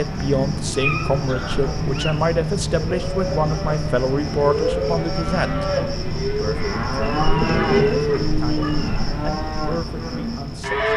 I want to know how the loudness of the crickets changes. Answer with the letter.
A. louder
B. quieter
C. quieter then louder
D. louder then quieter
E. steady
E.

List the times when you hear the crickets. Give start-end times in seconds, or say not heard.
0.0-10.9.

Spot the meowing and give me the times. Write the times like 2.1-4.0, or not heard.
0.7-2.1, 7.0-9.0.